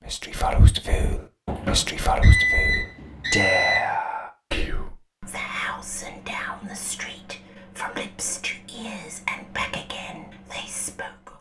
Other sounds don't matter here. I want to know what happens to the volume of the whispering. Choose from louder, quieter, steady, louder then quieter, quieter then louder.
quieter.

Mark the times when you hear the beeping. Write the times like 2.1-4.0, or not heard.
1.4-3.9.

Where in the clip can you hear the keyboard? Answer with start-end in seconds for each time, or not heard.
not heard.